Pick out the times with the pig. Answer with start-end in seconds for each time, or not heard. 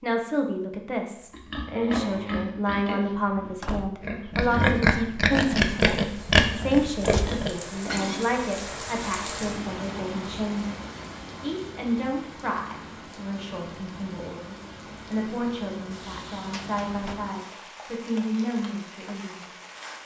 1.3-8.2.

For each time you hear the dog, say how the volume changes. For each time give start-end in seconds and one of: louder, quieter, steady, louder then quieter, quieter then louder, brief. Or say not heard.
not heard.